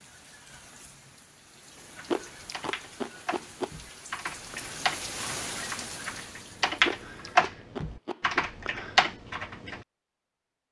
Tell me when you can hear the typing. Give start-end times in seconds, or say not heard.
1.9-9.8.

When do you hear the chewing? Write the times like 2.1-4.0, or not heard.
1.8-3.7, 6.7-8.4.